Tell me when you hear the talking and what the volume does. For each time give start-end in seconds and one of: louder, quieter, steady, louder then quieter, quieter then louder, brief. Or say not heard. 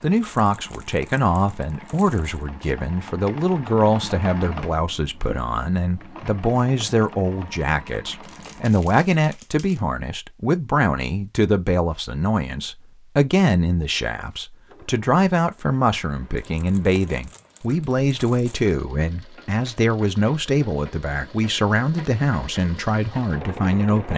0.0-24.1 steady.